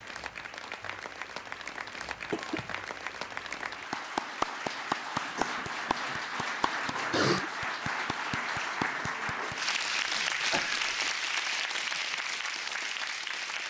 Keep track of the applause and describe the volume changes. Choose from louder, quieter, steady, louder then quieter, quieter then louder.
louder.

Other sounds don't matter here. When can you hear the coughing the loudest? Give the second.
7 s.